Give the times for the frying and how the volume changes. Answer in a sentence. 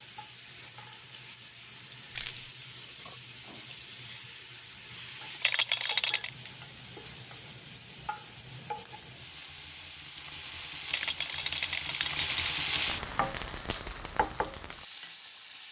The frying can be heard from 0.0 to 15.6 s, getting louder.